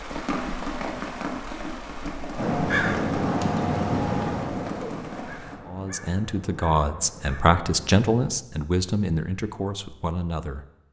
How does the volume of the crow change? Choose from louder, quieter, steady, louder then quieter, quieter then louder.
quieter.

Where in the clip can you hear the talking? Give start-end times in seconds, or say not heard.
5.7-10.8.